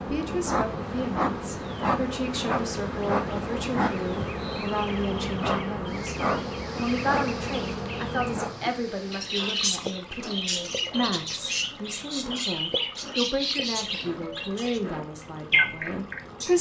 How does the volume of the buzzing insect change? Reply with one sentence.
The volume of the buzzing insect goes down.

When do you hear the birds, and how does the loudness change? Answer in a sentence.
You can hear the birds from 4.3 to 16.5 s, getting louder.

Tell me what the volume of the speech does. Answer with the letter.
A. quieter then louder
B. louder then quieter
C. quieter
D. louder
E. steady
E.